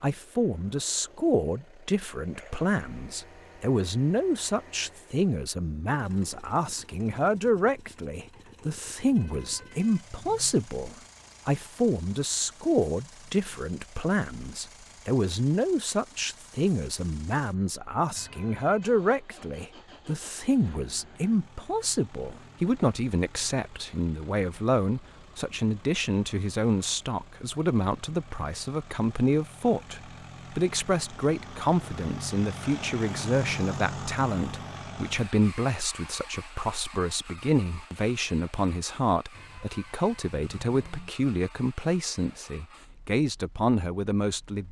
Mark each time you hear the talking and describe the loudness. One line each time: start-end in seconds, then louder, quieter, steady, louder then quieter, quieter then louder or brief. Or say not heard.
0.0-44.6 steady.